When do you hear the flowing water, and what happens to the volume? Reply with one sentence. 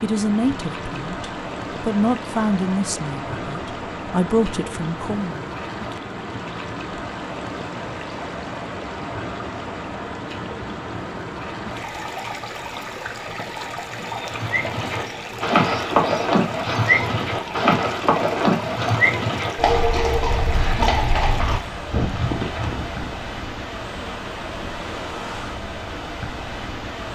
You can hear the flowing water from 0.0 to 27.1 s, at a steady volume.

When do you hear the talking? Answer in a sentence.
The talking can be heard from 0.0 to 5.5 s.